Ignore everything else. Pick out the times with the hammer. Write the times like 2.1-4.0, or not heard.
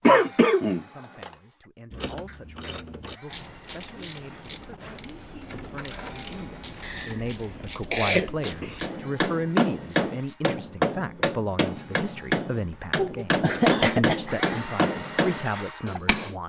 8.2-16.4.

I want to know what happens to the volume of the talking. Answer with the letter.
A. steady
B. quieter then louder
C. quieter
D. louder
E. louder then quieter
D.